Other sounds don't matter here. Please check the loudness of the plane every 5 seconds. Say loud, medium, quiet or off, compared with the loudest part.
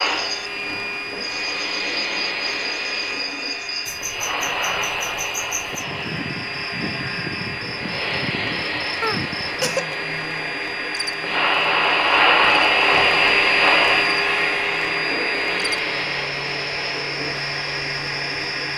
medium, medium, loud, medium.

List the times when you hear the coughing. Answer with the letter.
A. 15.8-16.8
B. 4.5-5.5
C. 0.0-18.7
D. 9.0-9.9
D.